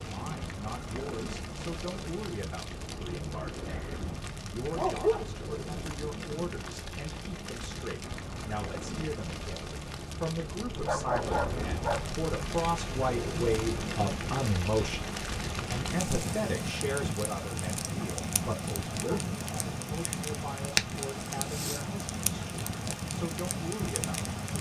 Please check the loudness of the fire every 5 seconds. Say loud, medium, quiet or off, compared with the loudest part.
medium, medium, loud, loud, loud.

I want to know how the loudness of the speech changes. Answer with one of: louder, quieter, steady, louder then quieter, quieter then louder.
louder then quieter.